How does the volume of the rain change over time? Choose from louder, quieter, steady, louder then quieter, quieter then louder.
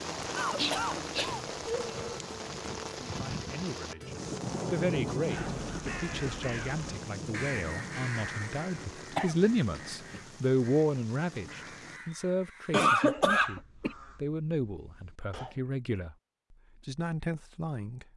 quieter.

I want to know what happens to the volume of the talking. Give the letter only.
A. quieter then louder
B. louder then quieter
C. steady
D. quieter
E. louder
B.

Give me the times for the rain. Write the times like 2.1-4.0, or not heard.
0.0-12.1.